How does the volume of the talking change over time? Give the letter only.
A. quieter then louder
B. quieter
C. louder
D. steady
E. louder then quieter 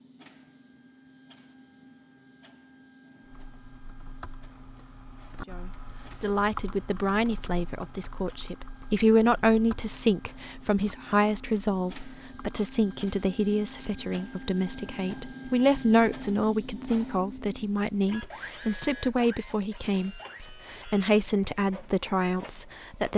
D.